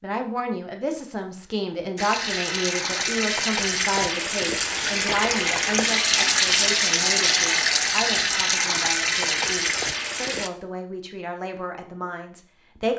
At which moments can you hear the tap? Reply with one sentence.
You can hear the tap from 1.9 to 10.5 s.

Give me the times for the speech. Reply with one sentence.
You can hear the speech from 0.0 to 12.9 s.